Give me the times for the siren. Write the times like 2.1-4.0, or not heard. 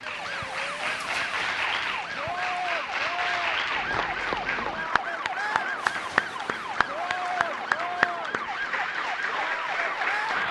0.0-10.4.